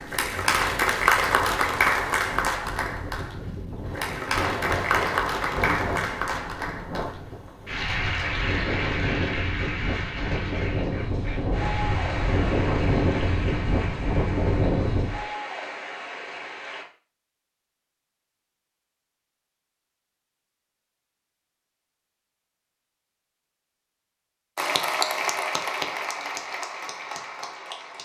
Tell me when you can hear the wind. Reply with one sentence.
You can hear the wind from 0.0 to 15.2 s.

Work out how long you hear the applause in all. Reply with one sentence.
You can hear the applause for 20 seconds altogether.